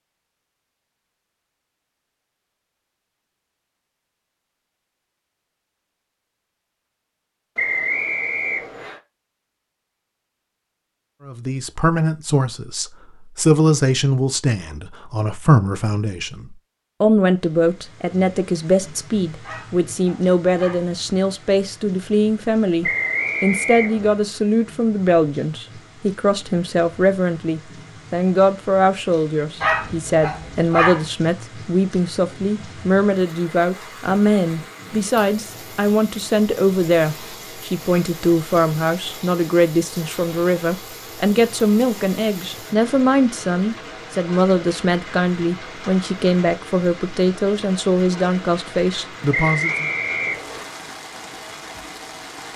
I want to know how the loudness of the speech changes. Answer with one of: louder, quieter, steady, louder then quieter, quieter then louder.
steady.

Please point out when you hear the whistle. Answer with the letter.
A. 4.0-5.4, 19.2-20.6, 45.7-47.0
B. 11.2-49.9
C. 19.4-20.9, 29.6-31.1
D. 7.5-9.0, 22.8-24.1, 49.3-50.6
D.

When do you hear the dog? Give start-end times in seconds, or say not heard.
19.4-20.9, 29.6-31.1.